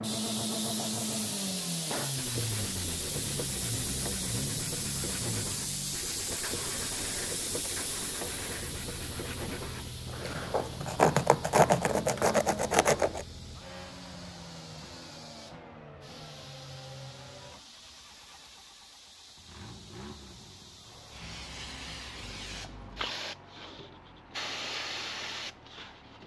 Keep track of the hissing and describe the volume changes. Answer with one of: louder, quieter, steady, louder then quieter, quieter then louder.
quieter then louder.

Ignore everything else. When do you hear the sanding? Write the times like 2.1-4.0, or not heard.
2.1-13.2.